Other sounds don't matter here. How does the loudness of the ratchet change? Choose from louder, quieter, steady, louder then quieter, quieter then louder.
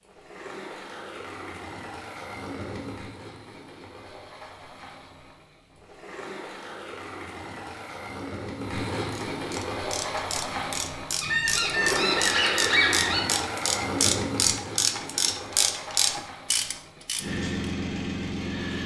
louder.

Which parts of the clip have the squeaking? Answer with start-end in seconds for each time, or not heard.
11.2-13.2.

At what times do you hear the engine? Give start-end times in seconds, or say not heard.
0.0-18.8.